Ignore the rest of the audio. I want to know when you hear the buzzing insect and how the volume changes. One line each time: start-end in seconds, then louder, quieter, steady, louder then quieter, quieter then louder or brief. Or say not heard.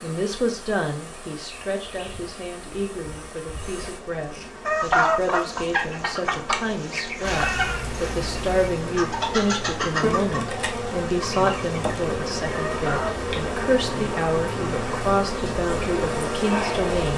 0.0-17.1 louder.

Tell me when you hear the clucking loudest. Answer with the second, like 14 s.
5 s.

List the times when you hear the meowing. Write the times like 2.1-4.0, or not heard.
7.2-8.8.